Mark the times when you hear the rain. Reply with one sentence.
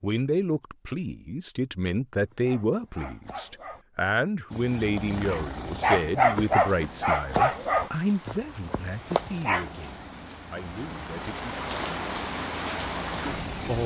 You can hear the rain from 6.5 to 13.8 s.